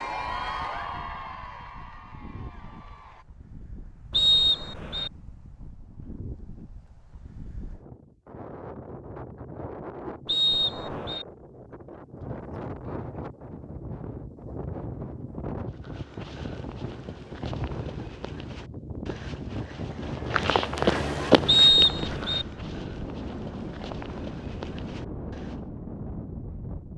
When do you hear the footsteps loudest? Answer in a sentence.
The loudest moment of the footsteps is at 21 seconds.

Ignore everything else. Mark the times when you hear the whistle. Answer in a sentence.
The whistle can be heard from 4.1 to 5.1 s, from 10.2 to 11.2 s and from 21.4 to 22.4 s.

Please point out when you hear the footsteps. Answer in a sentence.
You can hear the footsteps from 15.7 to 25.6 s.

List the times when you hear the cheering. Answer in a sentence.
You can hear the cheering from 0.0 to 3.2 s.